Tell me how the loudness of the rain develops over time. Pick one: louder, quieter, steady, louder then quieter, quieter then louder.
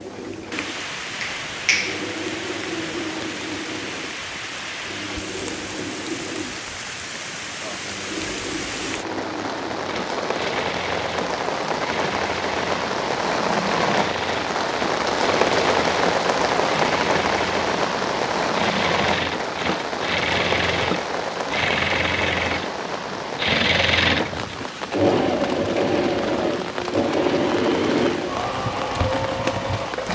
louder then quieter.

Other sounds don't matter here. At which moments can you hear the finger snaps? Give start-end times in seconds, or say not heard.
1.2-2.0.